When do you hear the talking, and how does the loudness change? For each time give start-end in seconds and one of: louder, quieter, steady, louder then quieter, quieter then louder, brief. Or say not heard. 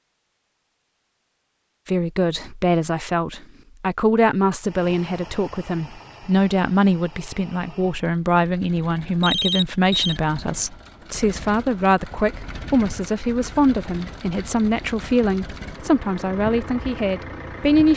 1.9-17.9 steady.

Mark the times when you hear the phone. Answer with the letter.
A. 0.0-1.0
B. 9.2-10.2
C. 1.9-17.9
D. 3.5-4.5
B.